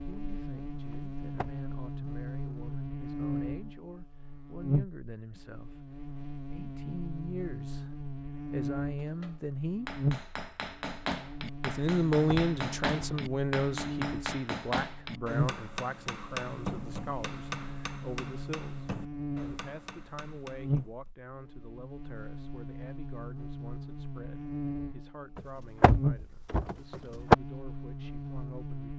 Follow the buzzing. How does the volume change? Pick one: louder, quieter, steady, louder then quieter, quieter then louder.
steady.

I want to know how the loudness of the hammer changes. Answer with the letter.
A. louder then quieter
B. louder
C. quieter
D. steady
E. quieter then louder
C.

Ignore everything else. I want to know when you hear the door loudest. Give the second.
27 s.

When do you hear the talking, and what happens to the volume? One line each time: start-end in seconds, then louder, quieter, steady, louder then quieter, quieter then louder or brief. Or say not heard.
0.0-7.9 louder
8.5-9.9 brief
11.6-28.9 quieter.